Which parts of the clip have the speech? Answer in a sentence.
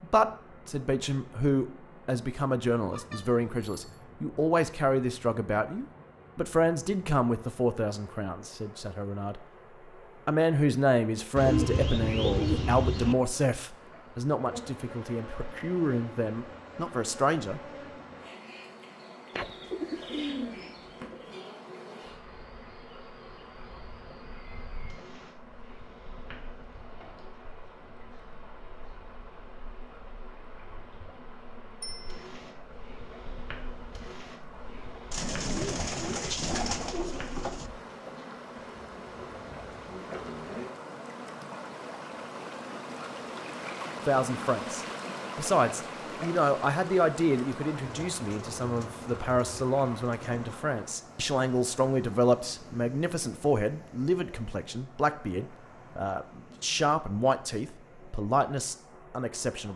The speech can be heard from 0.0 to 9.4 s, from 10.2 to 17.6 s and from 44.0 to 59.7 s.